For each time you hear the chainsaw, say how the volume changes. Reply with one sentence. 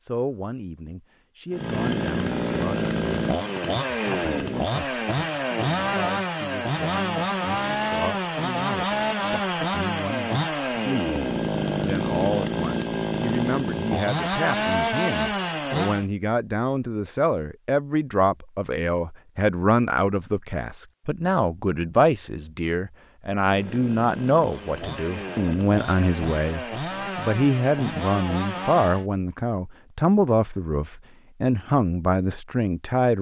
The chainsaw can be heard from 1.5 to 16.1 s, at a steady volume; and from 23.4 to 29.1 s, getting louder.